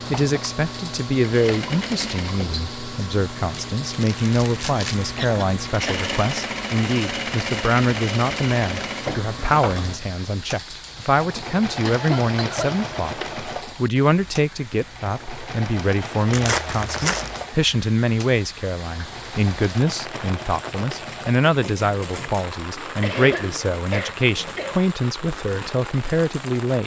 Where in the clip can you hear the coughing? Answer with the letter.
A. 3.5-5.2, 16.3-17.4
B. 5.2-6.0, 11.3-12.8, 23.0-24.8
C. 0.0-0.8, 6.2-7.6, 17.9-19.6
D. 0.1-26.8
B.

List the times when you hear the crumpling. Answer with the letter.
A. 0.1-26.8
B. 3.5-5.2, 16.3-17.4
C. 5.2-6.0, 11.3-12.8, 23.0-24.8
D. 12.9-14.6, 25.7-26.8
B.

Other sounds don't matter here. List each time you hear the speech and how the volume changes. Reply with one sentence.
The speech can be heard from 0.1 to 26.8 s, at a steady volume.